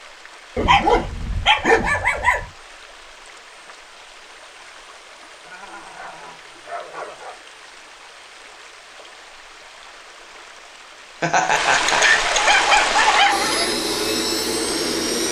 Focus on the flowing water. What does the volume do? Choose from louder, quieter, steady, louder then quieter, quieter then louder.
louder.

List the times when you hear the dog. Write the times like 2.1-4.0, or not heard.
0.6-2.5, 5.5-7.5, 11.8-13.8.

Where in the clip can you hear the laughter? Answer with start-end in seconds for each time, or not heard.
11.2-12.3.